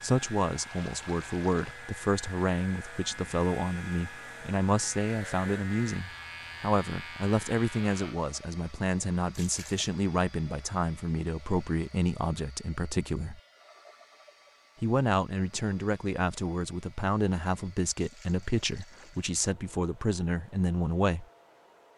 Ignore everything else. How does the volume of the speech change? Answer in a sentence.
The volume of the speech stays about the same.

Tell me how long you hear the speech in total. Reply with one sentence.
The speech can be heard for 20 seconds in total.